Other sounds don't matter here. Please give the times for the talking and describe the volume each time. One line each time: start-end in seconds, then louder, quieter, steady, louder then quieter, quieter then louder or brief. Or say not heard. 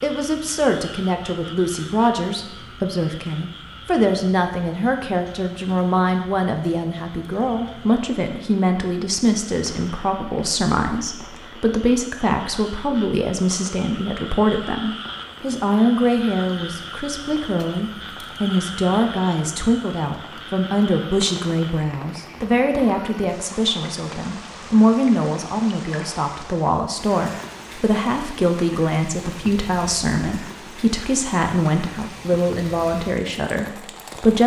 0.0-34.4 steady.